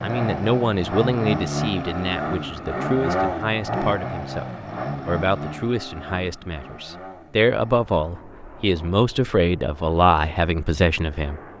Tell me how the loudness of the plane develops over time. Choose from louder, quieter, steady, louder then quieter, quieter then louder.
quieter.